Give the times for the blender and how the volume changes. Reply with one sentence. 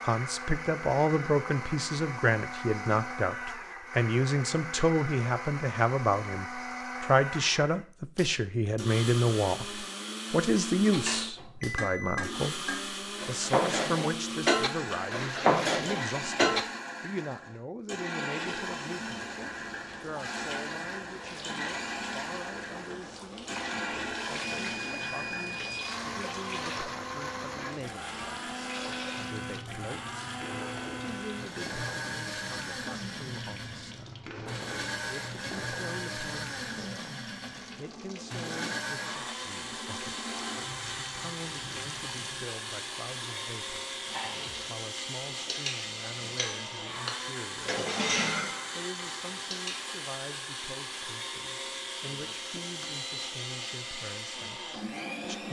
You can hear the blender from 0.0 to 55.4 s, at a steady volume.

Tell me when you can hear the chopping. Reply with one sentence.
You can't hear the chopping here.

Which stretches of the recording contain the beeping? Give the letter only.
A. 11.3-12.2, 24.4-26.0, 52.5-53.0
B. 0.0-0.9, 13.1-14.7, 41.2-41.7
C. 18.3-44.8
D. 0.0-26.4
A.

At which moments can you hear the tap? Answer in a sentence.
The tap can be heard from 18.3 to 44.8 s.